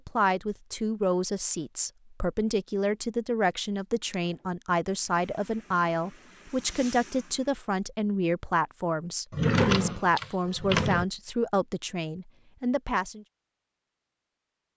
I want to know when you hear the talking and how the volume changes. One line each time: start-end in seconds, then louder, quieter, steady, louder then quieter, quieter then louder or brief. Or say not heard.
0.1-13.2 steady.